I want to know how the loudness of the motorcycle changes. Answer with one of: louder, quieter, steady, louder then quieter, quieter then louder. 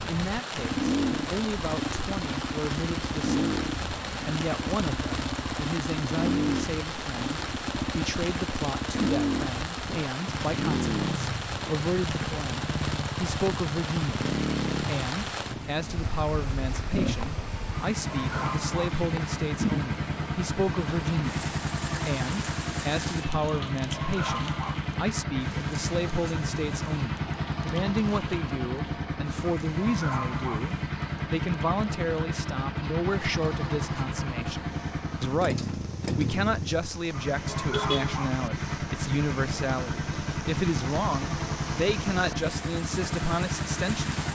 steady.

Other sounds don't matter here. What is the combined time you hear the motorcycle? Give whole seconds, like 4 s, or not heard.
44 s.